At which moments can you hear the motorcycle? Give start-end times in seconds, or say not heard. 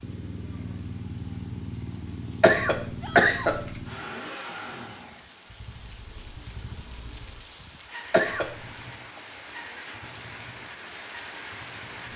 0.0-12.1.